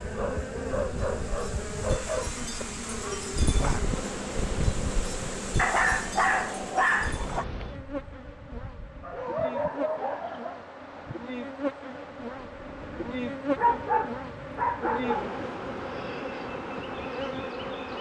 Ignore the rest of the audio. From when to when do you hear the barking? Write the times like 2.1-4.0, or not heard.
0.1-2.5, 5.5-7.5, 9.0-10.6, 13.6-15.4.